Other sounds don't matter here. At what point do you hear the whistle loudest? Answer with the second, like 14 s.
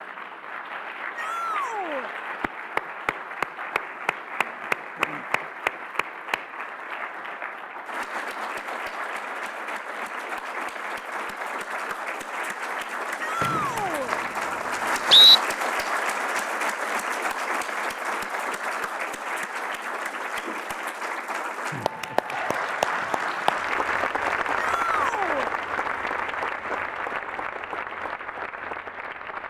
15 s.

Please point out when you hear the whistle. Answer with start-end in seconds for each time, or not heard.
13.4-15.4.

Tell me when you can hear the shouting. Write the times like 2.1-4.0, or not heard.
1.1-2.1, 13.2-14.2, 24.6-25.5.